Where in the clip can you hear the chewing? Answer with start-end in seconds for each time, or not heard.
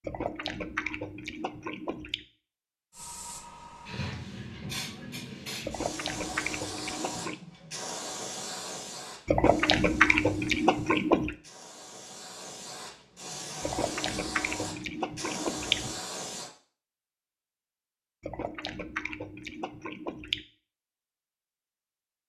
0.0-2.2, 5.6-7.3, 9.2-11.3, 13.6-16.0, 18.2-20.4.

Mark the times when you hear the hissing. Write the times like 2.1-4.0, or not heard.
2.9-16.5.